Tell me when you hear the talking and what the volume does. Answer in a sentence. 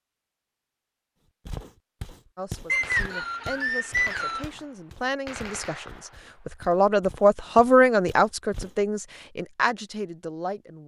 You can hear the talking from 2.4 to 10.8 s, getting louder then quieter.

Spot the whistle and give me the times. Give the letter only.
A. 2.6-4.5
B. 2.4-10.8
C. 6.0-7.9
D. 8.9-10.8
A.